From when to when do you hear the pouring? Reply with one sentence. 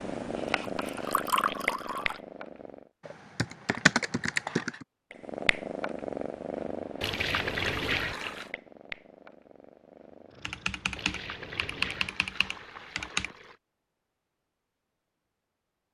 The pouring can be heard from 0.8 to 2.2 s, from 7.0 to 8.5 s and from 10.9 to 13.6 s.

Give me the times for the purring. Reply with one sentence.
You can hear the purring from 0.0 to 2.9 s and from 5.1 to 12.3 s.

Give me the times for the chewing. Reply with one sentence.
You can't hear the chewing here.